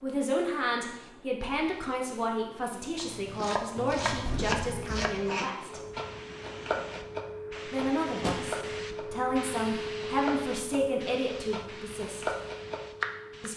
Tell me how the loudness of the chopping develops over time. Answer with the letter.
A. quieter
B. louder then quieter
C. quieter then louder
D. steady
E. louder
C.